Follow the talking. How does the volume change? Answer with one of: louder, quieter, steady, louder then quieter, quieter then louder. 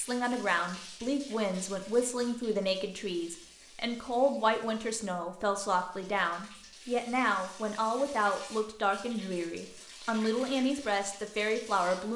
steady.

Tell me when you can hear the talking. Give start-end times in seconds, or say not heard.
0.0-12.1.